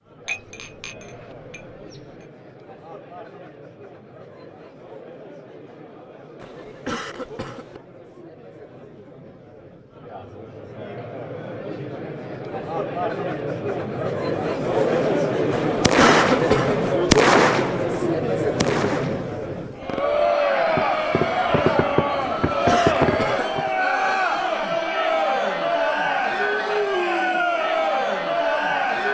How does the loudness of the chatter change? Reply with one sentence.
The volume of the chatter goes up.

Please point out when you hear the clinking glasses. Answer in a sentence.
The clinking glasses can be heard from 0.2 to 2.2 s.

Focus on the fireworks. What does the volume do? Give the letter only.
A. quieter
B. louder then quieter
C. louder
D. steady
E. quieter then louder
E.